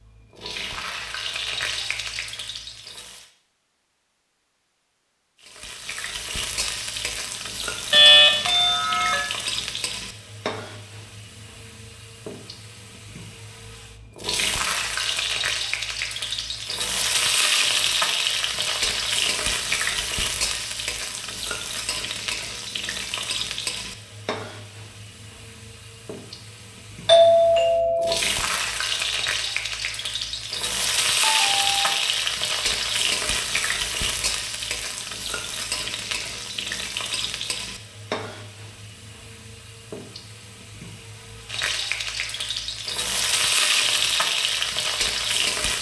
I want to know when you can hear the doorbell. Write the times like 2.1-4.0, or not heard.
7.9-9.2, 27.1-28.1, 31.2-32.0.